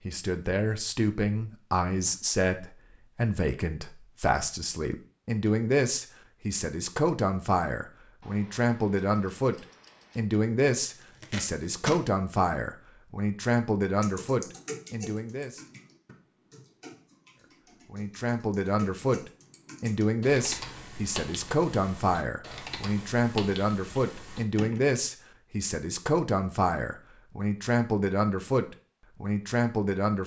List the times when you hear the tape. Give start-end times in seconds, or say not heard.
10.9-12.0.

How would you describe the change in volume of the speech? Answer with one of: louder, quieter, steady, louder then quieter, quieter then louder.
steady.